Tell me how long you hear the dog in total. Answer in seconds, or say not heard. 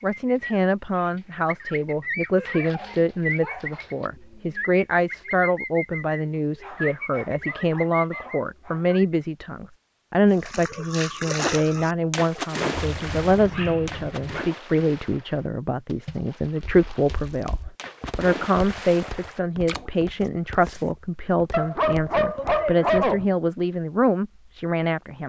8 s.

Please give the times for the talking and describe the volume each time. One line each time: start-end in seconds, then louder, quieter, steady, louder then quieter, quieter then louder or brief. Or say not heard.
0.0-25.2 steady.